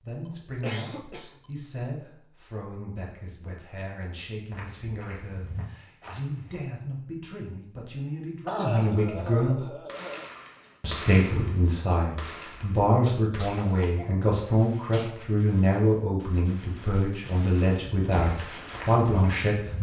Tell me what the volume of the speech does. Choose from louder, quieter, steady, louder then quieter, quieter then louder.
louder.